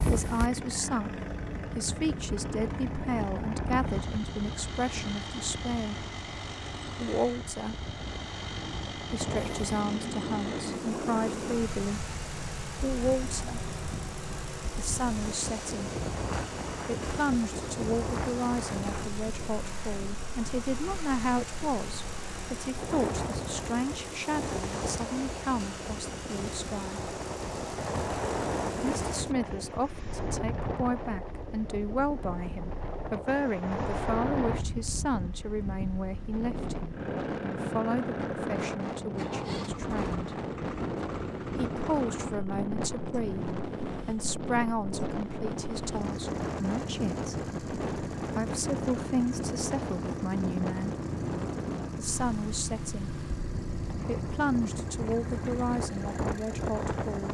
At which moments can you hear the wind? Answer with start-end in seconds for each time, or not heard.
0.0-57.2.